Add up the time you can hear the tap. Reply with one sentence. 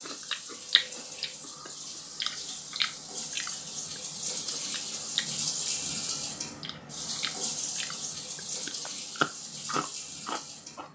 You can hear the tap for 11 seconds altogether.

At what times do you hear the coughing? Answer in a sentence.
You can't hear the coughing here.